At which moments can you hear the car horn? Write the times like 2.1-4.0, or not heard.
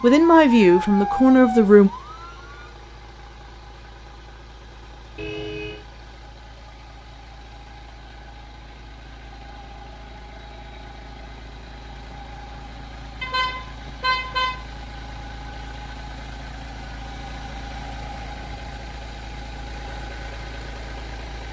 5.2-5.8, 13.2-14.6.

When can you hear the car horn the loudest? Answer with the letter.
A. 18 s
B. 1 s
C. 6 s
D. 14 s
D.